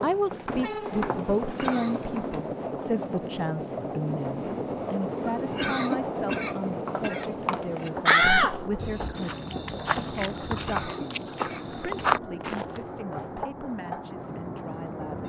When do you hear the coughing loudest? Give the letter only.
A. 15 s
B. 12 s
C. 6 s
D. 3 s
C.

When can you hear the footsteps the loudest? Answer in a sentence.
The volume of the footsteps peaks at 12 seconds.